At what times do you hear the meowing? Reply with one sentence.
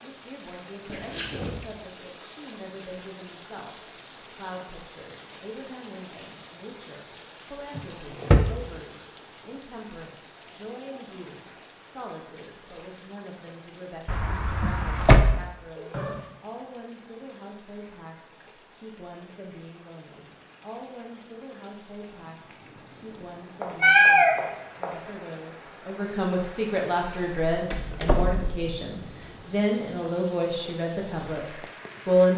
The meowing can be heard from 0.8 to 1.6 s, from 15.8 to 16.2 s and from 23.6 to 24.9 s.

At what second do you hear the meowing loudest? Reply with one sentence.
The volume of the meowing peaks at 24 seconds.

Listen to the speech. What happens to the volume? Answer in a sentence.
The volume of the speech goes up.